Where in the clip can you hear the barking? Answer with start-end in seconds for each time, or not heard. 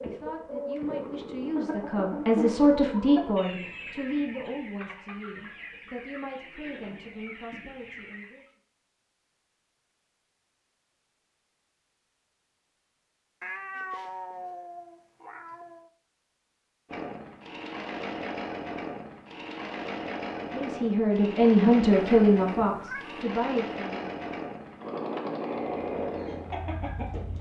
not heard.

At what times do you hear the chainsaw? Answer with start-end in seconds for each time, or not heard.
0.0-1.6, 16.9-27.3.